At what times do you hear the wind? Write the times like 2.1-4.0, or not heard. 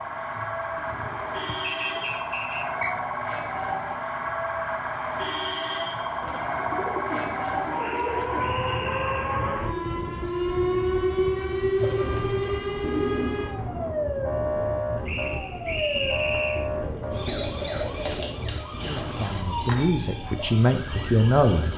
8.2-21.7.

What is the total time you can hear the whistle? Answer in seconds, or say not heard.
5 s.